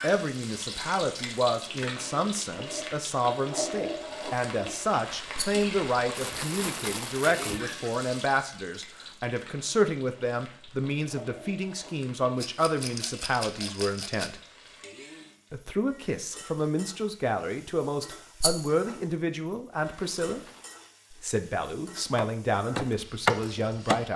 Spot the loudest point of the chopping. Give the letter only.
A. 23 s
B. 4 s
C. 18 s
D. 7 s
A.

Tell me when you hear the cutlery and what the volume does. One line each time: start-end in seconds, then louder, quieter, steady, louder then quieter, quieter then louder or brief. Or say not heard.
not heard.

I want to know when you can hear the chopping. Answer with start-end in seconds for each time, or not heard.
22.1-24.0.